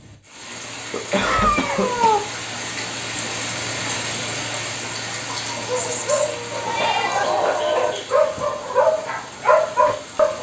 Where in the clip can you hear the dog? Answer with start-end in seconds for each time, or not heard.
5.4-10.3.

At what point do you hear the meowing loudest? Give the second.
2 s.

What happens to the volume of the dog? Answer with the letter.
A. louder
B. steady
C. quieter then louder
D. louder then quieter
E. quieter
A.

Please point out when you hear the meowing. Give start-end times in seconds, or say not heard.
1.2-2.2, 5.8-7.4.